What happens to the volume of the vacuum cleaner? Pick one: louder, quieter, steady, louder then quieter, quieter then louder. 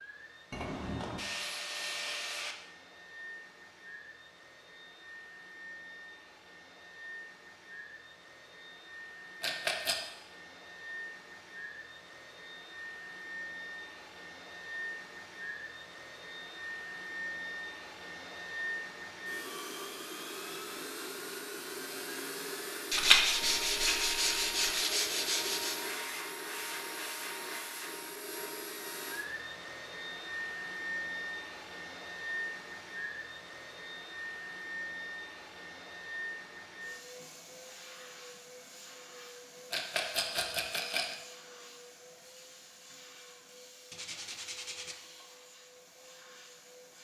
louder then quieter.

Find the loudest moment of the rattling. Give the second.
23 s.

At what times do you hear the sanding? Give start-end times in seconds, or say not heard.
0.5-2.5, 22.9-25.8, 43.9-45.0.